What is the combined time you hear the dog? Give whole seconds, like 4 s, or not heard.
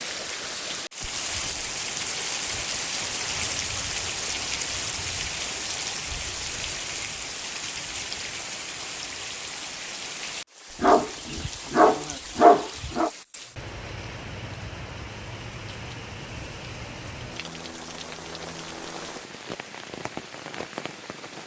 2 s.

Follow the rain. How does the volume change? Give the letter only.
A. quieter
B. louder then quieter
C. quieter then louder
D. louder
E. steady
A.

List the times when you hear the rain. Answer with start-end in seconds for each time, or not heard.
0.0-21.4.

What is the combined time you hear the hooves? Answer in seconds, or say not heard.
not heard.